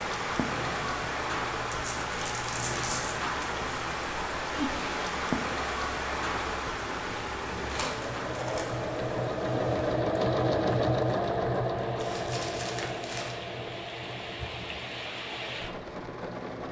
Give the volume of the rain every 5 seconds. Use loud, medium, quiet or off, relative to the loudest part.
loud, loud, medium, medium.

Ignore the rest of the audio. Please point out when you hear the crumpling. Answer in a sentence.
You can hear the crumpling from 1.7 to 3.1 s, from 7.7 to 8.8 s and from 11.9 to 13.3 s.